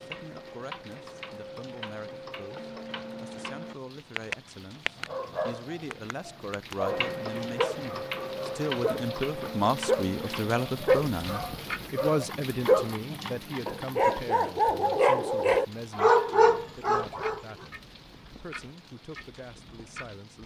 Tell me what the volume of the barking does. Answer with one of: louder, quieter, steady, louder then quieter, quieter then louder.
louder.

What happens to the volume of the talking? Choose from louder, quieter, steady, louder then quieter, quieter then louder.
louder then quieter.